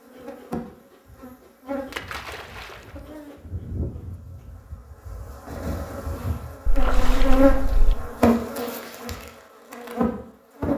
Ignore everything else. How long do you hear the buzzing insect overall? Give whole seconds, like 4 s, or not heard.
11 s.